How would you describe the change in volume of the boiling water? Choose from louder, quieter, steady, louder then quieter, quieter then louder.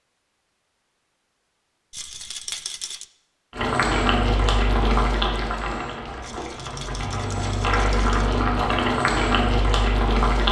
quieter then louder.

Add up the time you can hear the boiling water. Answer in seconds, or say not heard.
7 s.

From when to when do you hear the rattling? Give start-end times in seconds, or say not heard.
1.9-3.0, 6.2-8.3.